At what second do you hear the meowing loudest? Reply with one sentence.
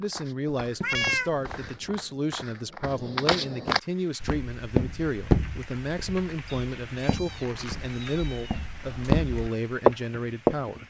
The volume of the meowing peaks at 1 second.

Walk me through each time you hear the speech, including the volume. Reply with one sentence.
You can hear the speech from 0.0 to 10.8 s, at a steady volume.